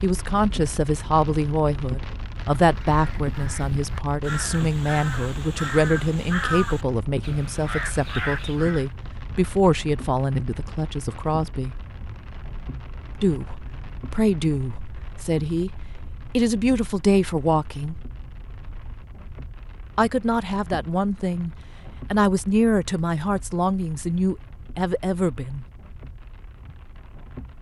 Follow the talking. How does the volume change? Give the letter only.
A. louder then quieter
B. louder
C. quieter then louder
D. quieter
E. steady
E.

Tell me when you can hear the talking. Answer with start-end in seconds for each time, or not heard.
0.0-11.8, 13.2-18.1, 19.9-25.6.